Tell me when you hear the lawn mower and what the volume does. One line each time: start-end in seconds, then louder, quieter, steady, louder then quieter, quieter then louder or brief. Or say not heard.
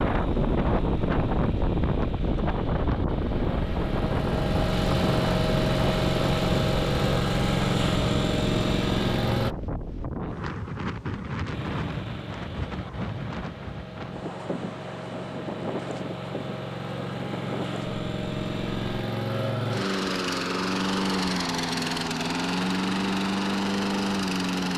0.0-9.6 louder
11.5-24.7 louder.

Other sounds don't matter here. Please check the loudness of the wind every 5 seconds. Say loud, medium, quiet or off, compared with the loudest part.
loud, loud, medium, medium, off.